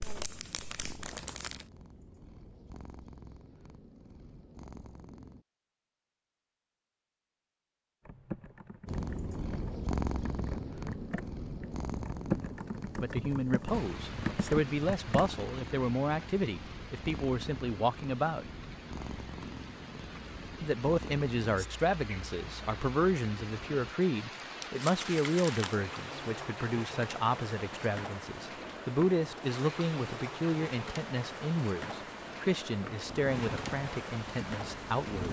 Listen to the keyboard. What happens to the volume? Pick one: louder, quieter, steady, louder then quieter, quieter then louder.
louder.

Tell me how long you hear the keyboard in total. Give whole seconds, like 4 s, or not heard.
7 s.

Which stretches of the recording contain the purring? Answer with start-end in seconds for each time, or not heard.
0.0-5.5, 8.8-23.9, 33.0-35.2.